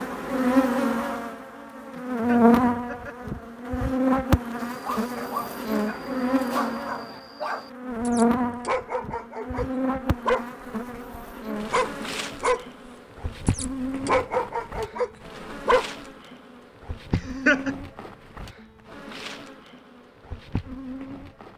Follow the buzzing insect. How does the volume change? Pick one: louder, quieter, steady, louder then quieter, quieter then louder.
quieter.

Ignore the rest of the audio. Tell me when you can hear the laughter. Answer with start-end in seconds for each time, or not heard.
1.9-3.1, 17.1-17.8.